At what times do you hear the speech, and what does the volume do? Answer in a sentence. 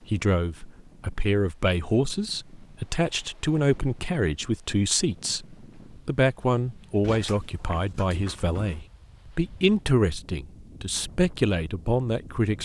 The speech can be heard from 0.1 to 12.5 s, at a steady volume.